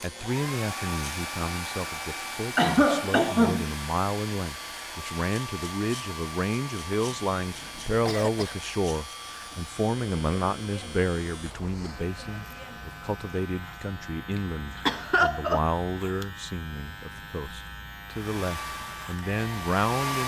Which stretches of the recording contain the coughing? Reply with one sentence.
The coughing can be heard from 2.5 to 3.7 s, from 7.0 to 8.6 s and from 14.8 to 15.6 s.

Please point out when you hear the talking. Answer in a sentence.
You can hear the talking from 0.0 to 20.2 s.